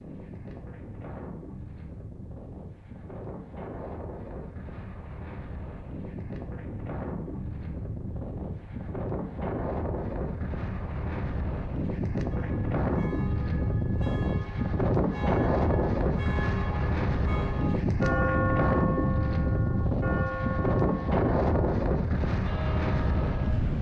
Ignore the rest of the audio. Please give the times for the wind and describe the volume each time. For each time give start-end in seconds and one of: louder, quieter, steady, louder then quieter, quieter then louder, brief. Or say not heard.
0.0-23.7 louder.